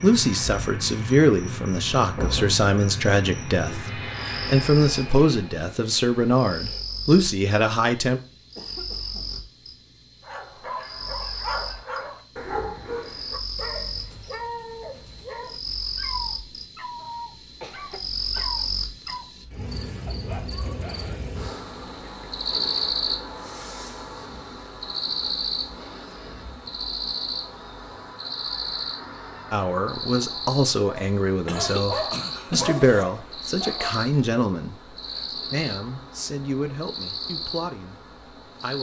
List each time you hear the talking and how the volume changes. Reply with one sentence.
You can hear the talking from 0.0 to 8.2 s, at a steady volume; and from 29.5 to 38.7 s, getting quieter.